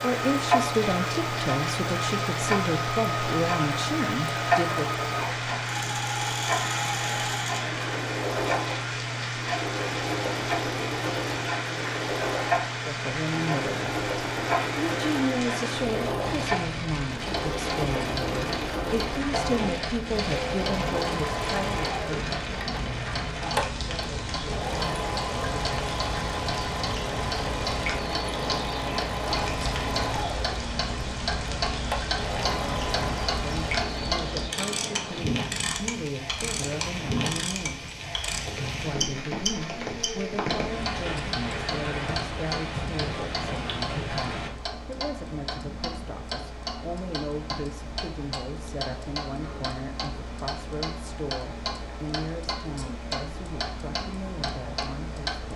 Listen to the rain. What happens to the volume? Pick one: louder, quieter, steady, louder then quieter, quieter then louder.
steady.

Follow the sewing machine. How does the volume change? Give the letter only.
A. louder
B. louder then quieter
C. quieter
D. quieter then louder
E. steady
E.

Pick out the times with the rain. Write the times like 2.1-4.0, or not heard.
0.0-44.5.